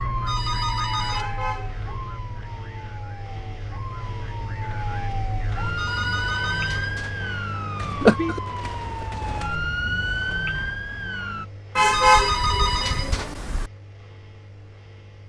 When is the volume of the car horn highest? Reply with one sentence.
The volume of the car horn peaks at 12 seconds.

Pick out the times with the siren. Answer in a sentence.
The siren can be heard from 0.0 to 11.4 s.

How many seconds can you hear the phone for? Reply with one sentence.
You can hear the phone for 4 seconds altogether.